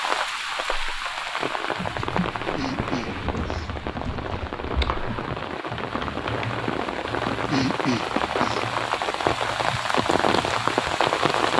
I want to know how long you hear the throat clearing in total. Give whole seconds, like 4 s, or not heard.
3 s.